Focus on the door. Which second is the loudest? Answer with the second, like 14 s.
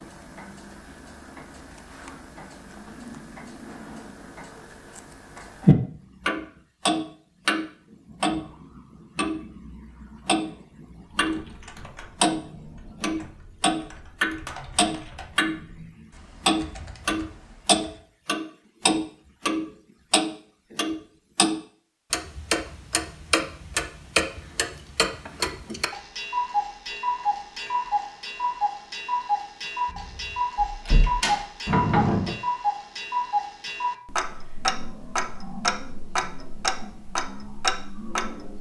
32 s.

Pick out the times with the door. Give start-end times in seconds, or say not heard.
29.9-32.4.